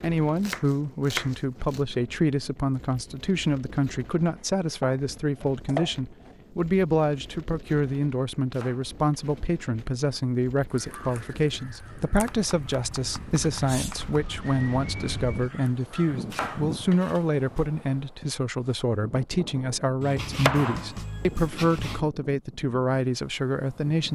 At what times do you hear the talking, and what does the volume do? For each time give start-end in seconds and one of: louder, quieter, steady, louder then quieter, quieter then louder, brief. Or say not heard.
0.0-24.1 steady.